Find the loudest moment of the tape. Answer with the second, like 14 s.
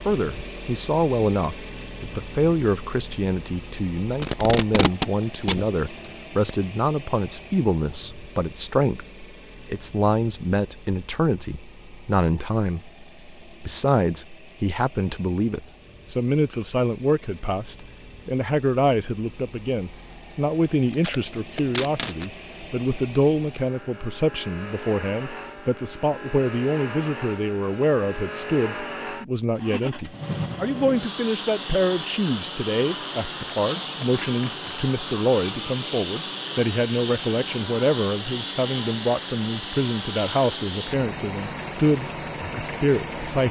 5 s.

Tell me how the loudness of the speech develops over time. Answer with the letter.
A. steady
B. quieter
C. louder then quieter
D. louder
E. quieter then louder
A.